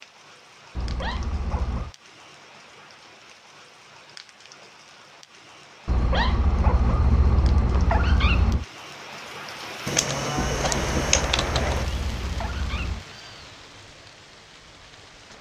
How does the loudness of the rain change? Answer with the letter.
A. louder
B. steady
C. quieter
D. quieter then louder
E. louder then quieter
E.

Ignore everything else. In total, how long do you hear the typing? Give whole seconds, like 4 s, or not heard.
2 s.